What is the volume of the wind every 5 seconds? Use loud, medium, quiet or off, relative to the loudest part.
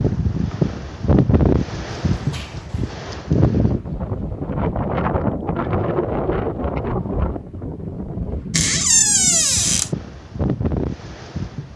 loud, loud, medium.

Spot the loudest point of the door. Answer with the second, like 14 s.
9 s.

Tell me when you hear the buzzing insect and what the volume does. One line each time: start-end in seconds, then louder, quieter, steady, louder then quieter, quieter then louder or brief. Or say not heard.
not heard.